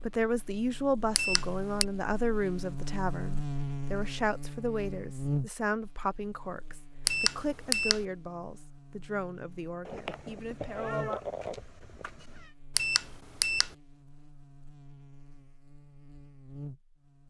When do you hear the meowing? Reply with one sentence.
The meowing can be heard from 9.8 to 12.5 s.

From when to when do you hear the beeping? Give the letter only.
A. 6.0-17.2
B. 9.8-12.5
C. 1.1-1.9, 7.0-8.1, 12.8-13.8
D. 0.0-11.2
C.